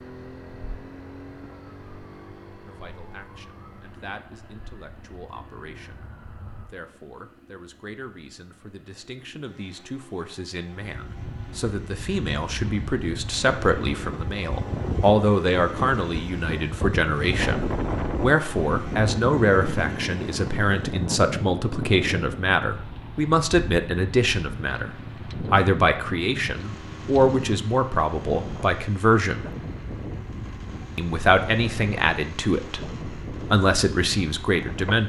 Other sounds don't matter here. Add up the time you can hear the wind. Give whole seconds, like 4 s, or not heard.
24 s.